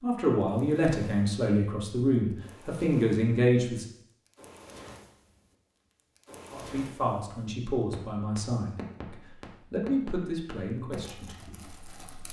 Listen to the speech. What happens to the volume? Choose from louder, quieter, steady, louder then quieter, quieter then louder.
quieter.